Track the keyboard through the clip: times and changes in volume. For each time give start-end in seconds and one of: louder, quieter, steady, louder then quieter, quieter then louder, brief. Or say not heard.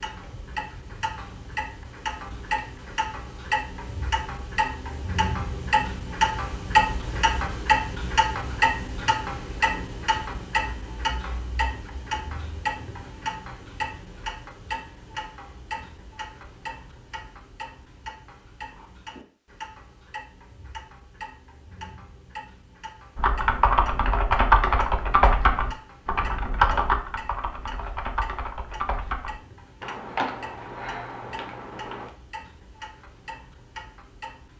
23.1-32.1 quieter.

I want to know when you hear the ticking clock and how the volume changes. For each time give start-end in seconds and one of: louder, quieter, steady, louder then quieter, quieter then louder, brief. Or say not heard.
0.0-34.5 quieter.